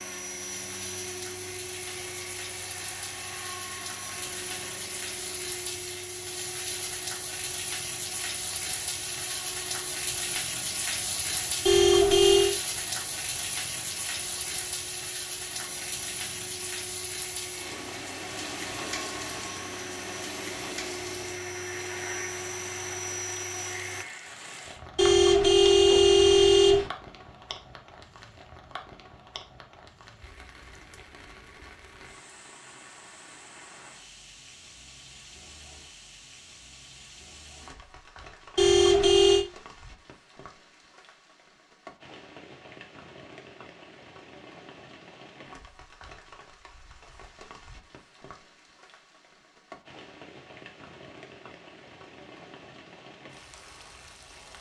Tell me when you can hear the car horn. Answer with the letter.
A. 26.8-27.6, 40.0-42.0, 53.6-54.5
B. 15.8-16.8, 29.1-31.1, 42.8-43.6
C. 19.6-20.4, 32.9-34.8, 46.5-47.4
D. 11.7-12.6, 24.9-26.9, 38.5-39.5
D.